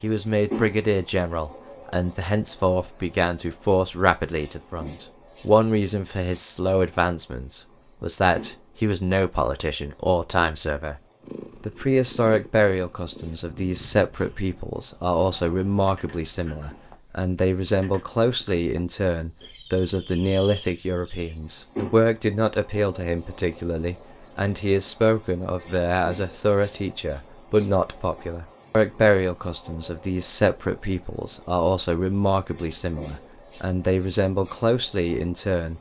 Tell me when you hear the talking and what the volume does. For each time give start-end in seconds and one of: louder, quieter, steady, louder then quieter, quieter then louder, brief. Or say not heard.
0.0-11.0 steady
11.6-35.7 steady.